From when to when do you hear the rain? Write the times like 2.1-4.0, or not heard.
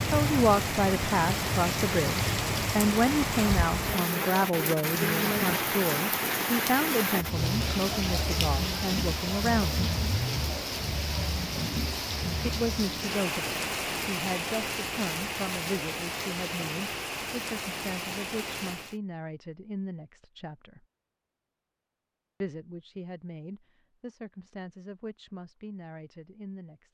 0.0-19.0.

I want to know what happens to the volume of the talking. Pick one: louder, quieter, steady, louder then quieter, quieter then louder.
quieter.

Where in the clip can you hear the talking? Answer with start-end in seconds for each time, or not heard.
0.1-9.8, 12.4-20.8, 22.4-26.8.